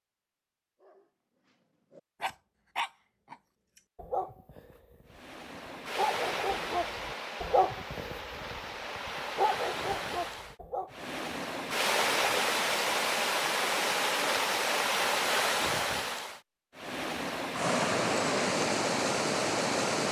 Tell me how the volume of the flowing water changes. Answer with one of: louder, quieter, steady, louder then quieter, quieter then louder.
louder.